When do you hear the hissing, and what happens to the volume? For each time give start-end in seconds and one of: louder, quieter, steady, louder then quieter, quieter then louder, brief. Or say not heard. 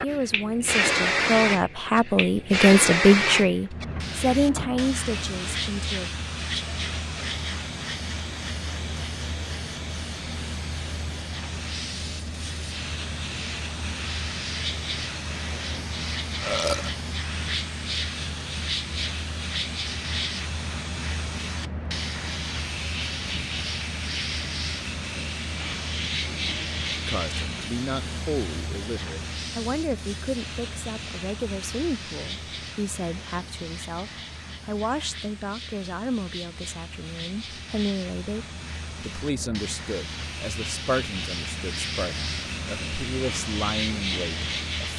0.0-44.9 quieter.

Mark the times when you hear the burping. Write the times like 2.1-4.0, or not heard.
16.4-16.9.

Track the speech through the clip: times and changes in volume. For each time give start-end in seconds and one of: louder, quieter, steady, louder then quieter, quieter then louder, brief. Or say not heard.
0.0-6.1 louder then quieter
27.1-44.9 steady.